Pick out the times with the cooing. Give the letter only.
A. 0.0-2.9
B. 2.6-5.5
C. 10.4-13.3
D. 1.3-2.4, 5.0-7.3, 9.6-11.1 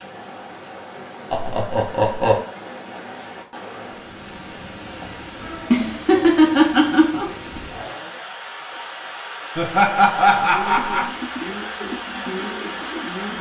C.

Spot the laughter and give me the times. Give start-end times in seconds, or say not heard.
1.3-2.4, 5.0-7.3, 9.6-11.1.